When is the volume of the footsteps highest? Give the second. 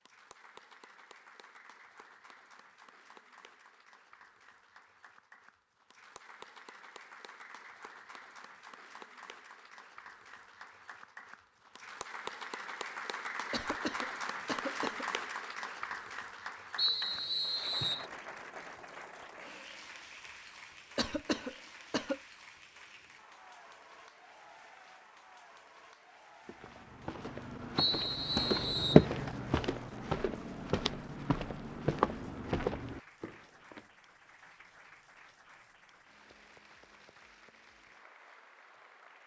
29 s.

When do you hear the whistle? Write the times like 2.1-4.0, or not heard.
16.8-18.1, 27.8-29.1.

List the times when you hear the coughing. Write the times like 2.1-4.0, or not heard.
13.5-15.1, 20.9-22.2.